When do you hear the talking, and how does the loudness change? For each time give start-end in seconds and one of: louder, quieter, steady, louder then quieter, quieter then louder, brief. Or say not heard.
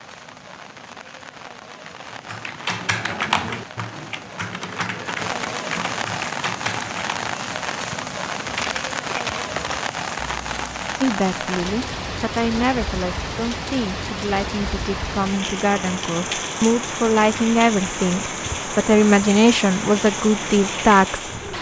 11.0-21.5 louder.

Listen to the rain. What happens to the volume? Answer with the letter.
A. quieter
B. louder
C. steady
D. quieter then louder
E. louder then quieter
B.